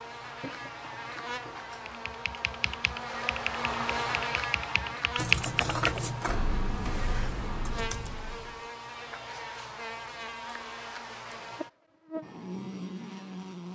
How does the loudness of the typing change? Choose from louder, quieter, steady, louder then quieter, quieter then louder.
louder then quieter.